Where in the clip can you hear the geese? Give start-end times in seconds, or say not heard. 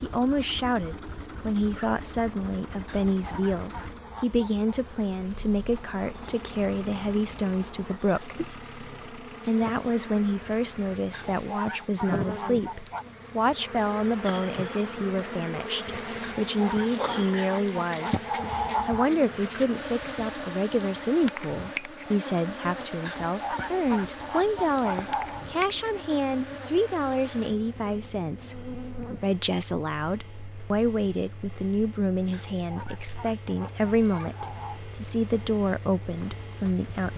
2.9-4.8, 11.1-13.1, 16.2-19.1, 23.1-25.4, 32.3-34.8.